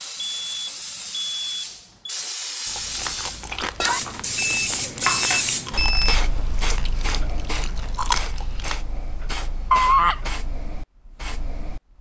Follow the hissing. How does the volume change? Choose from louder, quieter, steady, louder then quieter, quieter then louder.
louder then quieter.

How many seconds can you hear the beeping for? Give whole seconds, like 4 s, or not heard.
4 s.